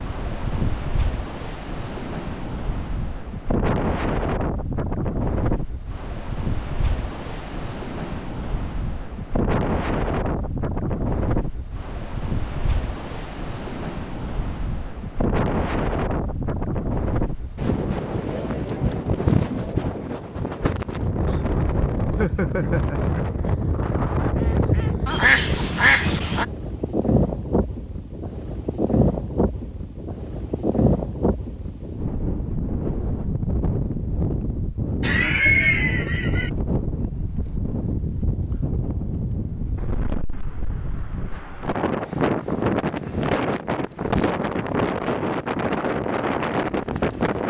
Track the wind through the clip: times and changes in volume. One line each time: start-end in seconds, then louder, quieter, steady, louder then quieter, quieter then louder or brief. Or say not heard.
0.0-47.4 steady.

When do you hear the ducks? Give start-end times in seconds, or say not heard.
21.2-26.4.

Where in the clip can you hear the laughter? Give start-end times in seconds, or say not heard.
35.0-36.5.